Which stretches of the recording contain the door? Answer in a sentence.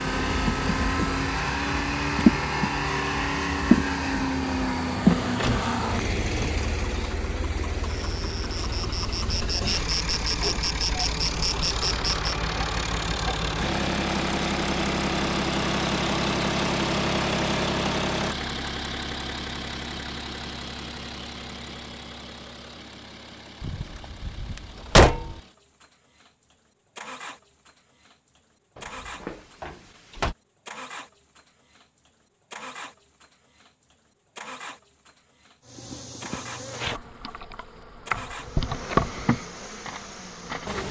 The door can be heard from 5.4 to 6.6 s, from 23.6 to 25.4 s and from 28.8 to 30.4 s.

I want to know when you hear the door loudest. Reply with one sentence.
The loudest moment of the door is at 25 seconds.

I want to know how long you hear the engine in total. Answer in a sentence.
You can hear the engine for 41 seconds altogether.